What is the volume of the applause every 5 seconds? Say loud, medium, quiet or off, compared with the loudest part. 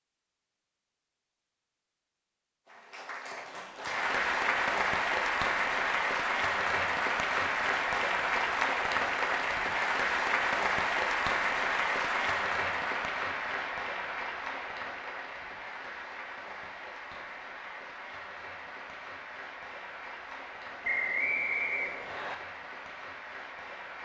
loud, loud, loud, quiet, quiet.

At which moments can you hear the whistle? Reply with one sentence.
You can hear the whistle from 20.8 to 22.4 s.